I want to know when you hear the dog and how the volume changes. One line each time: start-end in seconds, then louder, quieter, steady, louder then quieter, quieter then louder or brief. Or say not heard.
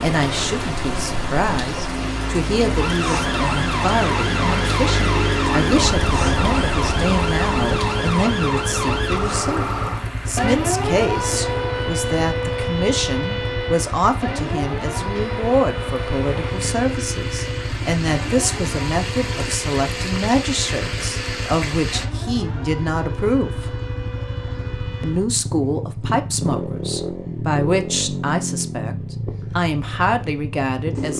not heard.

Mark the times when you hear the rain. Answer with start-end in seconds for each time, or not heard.
0.0-22.1.